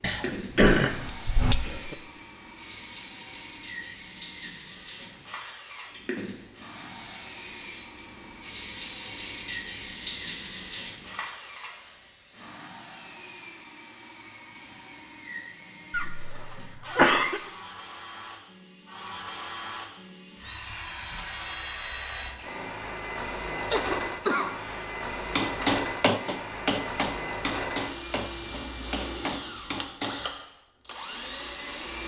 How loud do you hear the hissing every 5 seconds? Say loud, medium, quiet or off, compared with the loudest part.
loud, loud, loud, quiet, off, off, off.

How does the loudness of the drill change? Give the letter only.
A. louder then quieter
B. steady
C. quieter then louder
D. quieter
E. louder
E.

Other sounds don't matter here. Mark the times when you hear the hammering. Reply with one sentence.
The hammering can be heard from 0.0 to 1.6 s and from 25.4 to 30.2 s.